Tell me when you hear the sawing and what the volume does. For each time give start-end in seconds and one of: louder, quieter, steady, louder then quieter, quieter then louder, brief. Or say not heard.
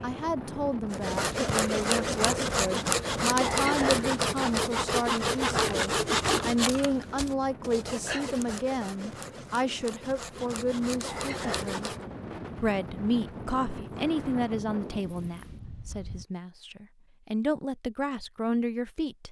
0.9-12.0 quieter.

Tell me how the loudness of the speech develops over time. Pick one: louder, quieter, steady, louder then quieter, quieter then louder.
steady.